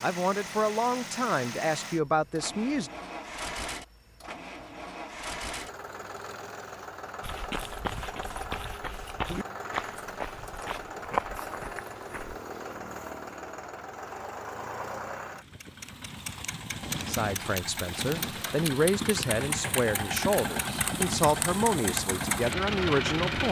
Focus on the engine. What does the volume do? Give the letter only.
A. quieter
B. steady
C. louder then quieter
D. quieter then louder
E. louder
E.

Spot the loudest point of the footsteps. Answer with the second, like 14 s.
11 s.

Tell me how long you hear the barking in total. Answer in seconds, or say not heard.
not heard.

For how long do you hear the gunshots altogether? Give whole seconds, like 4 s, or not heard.
2 s.